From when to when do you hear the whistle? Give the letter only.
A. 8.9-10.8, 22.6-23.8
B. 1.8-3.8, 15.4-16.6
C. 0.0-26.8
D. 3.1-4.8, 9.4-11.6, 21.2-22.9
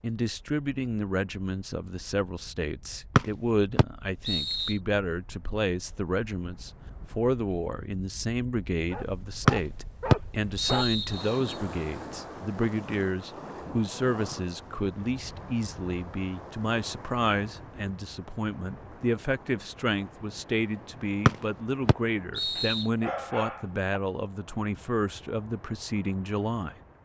D.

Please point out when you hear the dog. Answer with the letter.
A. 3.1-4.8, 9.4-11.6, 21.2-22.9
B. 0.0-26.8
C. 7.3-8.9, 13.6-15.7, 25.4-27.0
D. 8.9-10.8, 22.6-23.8
D.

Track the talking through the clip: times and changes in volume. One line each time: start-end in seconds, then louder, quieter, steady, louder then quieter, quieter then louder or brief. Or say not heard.
0.0-26.8 steady.